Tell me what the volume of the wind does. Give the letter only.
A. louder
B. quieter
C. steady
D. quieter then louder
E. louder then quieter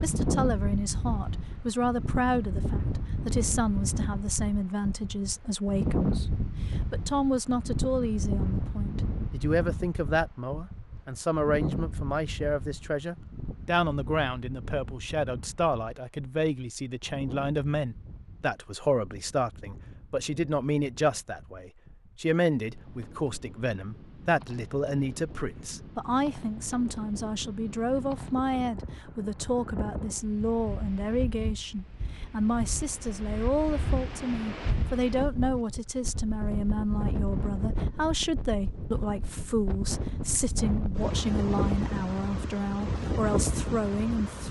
D.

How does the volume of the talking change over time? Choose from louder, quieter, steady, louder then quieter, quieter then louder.
steady.